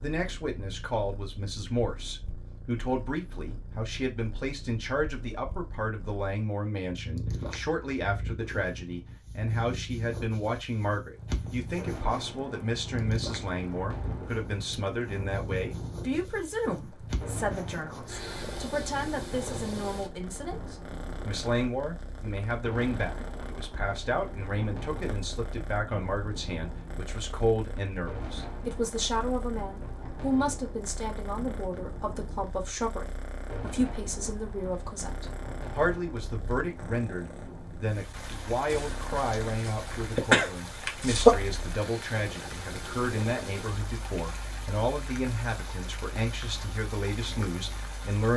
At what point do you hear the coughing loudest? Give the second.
41 s.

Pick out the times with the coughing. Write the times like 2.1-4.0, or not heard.
38.7-41.3.